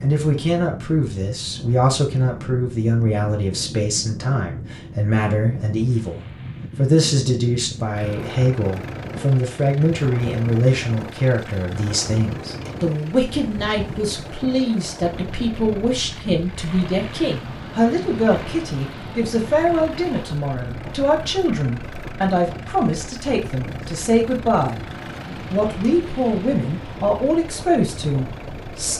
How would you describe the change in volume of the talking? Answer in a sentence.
The loudness of the talking stays about the same.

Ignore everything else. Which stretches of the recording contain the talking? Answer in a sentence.
The talking can be heard from 0.0 to 24.8 s and from 25.5 to 28.9 s.